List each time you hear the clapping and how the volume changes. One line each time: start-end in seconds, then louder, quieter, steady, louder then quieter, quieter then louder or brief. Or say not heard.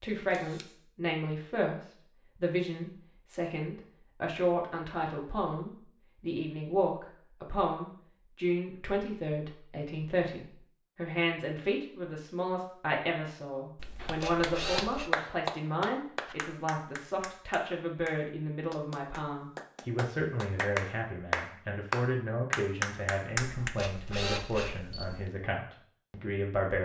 14.0-23.7 quieter then louder.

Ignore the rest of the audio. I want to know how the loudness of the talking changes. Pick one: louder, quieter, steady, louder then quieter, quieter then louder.
steady.